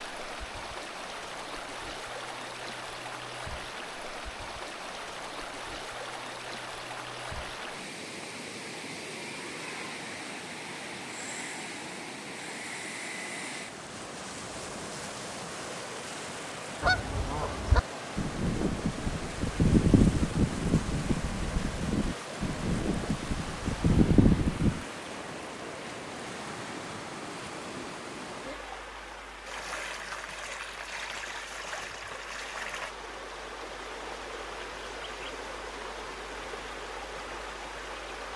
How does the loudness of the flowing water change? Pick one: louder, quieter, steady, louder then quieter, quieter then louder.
steady.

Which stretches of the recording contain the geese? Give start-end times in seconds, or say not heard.
16.8-24.9.